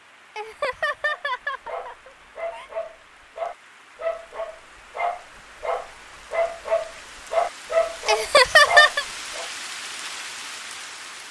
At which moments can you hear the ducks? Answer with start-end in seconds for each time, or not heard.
not heard.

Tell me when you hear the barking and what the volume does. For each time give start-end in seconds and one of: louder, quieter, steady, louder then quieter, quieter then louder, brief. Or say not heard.
1.1-9.5 louder.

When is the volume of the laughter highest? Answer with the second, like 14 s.
9 s.